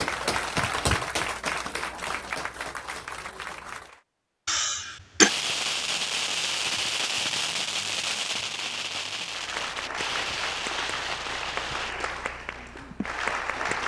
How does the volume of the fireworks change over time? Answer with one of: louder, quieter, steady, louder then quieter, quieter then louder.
quieter.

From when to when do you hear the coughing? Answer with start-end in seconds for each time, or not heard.
4.5-5.3.